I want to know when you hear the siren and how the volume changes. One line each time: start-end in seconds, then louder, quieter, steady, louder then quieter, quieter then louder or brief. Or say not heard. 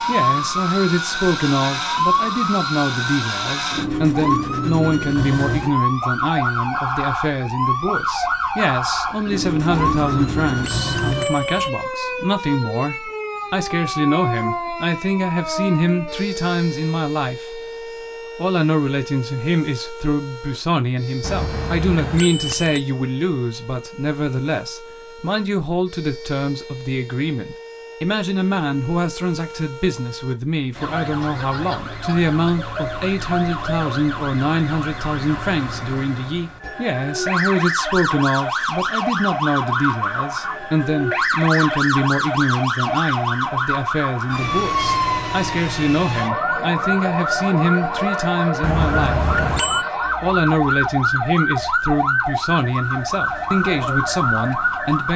0.0-55.1 quieter then louder.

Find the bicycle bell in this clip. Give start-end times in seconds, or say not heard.
9.7-11.7, 21.2-22.8, 48.6-49.9.